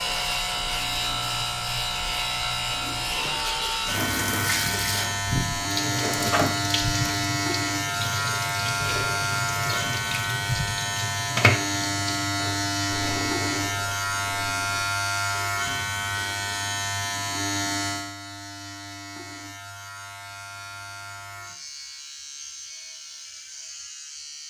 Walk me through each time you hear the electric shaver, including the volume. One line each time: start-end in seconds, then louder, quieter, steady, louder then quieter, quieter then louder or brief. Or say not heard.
0.0-24.4 quieter.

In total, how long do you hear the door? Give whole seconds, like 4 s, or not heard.
2 s.